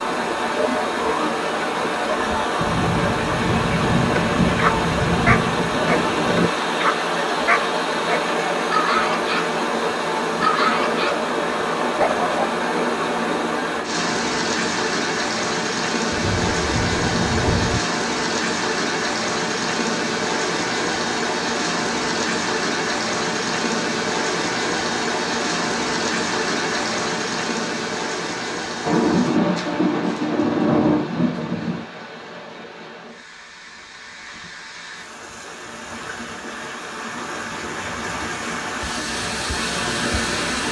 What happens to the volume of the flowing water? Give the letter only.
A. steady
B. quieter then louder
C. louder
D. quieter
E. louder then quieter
D.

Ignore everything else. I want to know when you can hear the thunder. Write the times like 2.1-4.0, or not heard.
2.5-6.5, 16.1-17.8, 28.8-31.9.